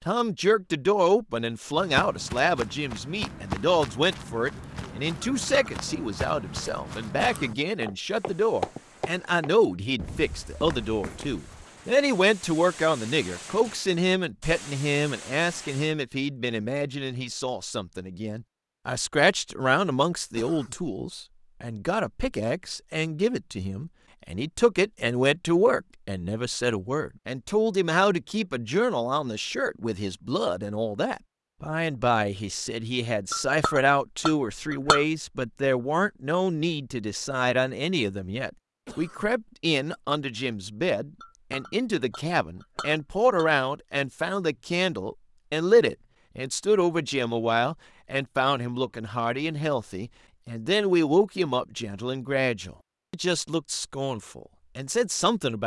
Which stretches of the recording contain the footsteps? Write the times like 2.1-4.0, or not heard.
1.8-11.7.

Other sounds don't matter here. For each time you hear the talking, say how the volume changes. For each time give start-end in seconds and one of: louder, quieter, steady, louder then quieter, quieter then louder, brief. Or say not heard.
0.1-55.6 steady.